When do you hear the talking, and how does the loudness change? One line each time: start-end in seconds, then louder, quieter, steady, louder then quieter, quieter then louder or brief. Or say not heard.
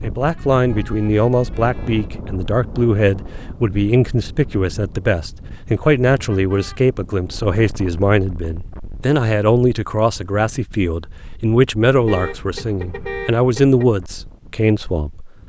0.0-15.3 steady.